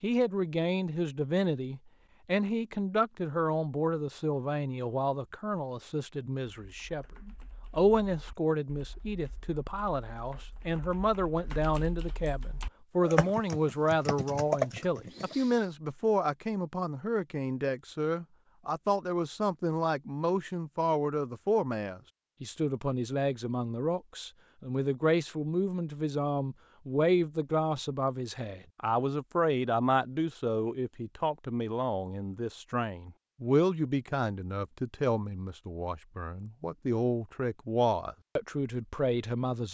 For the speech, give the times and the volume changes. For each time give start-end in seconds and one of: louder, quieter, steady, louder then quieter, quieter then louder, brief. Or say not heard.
0.0-39.6 steady.